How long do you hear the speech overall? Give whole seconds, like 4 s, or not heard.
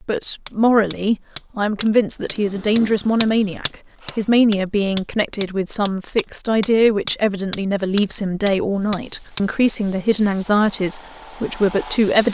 12 s.